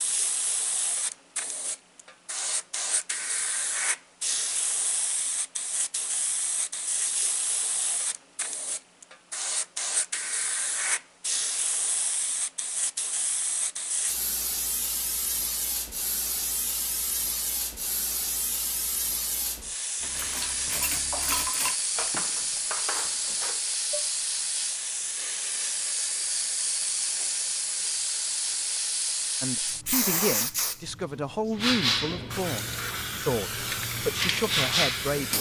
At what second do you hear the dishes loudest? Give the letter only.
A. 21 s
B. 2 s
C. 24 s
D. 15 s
A.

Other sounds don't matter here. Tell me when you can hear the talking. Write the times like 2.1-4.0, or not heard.
29.4-35.3.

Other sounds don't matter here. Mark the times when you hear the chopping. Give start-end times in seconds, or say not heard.
not heard.